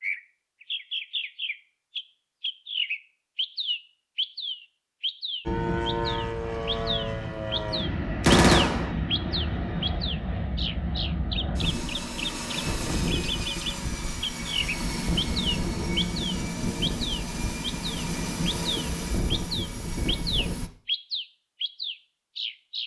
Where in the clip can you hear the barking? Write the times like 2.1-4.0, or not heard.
not heard.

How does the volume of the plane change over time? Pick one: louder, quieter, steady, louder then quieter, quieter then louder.
steady.